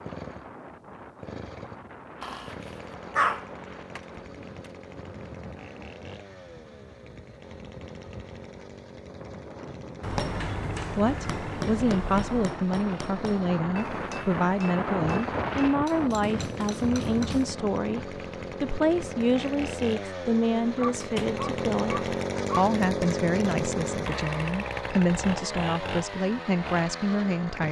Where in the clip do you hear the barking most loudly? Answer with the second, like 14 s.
3 s.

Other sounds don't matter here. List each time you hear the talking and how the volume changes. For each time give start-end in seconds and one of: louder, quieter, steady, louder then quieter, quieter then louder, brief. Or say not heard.
10.4-27.6 steady.